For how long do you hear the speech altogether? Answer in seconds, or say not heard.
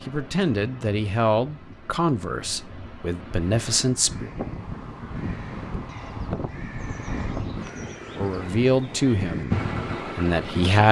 7 s.